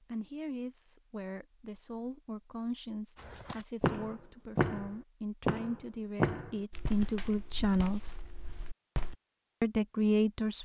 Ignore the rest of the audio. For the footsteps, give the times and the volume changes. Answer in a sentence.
The footsteps can be heard from 3.1 to 9.2 s, getting quieter.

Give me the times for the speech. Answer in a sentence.
You can hear the speech from 0.0 to 8.2 s and from 9.6 to 10.6 s.